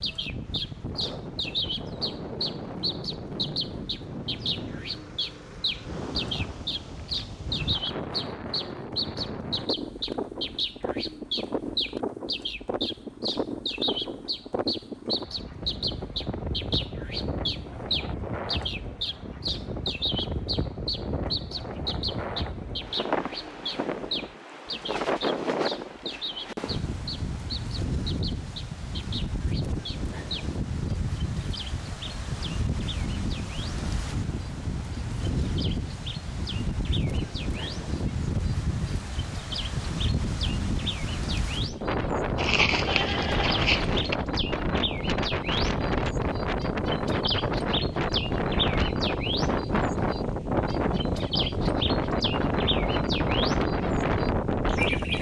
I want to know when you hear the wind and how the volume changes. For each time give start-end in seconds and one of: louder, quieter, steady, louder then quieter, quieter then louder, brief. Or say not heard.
0.0-55.1 louder.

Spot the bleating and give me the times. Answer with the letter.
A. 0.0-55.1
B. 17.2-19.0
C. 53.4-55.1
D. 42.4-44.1
D.